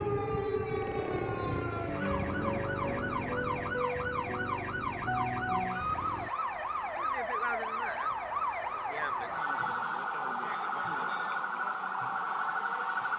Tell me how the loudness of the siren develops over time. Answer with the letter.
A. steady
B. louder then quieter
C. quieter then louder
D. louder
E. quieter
A.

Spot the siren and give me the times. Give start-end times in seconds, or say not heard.
0.0-13.1.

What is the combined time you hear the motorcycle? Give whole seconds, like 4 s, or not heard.
6 s.